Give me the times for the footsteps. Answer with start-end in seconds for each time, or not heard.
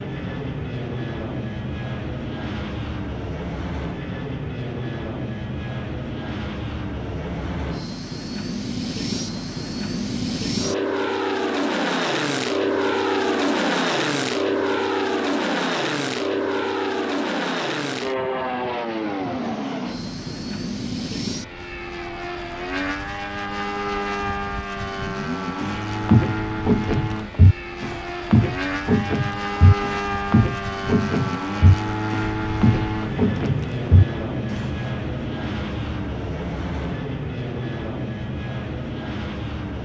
25.6-34.7.